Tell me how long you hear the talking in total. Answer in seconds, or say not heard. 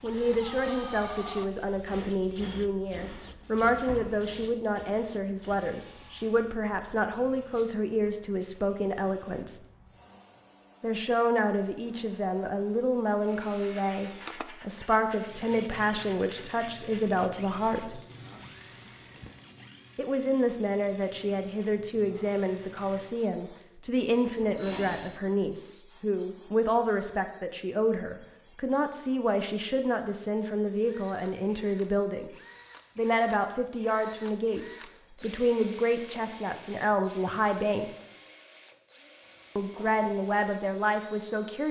36 s.